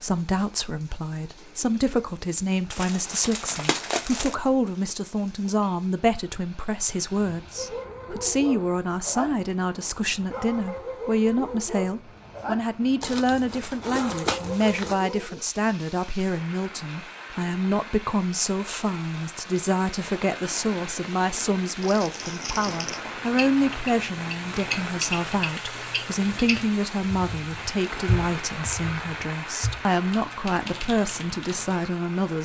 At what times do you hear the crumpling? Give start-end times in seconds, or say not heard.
2.7-4.3, 13.0-14.9, 21.8-23.0.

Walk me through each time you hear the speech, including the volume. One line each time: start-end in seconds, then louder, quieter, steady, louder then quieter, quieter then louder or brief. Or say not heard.
0.0-32.4 steady.